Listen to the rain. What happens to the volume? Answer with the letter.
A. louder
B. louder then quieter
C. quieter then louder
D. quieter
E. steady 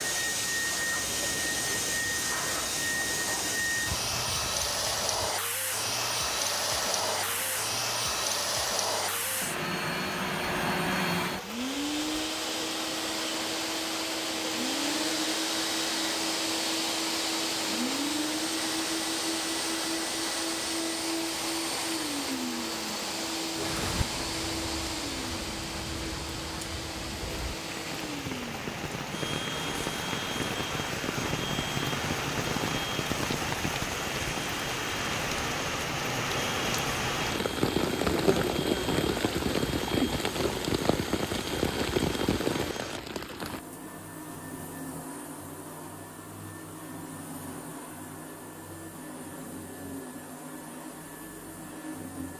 A.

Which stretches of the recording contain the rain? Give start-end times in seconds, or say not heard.
0.0-43.6.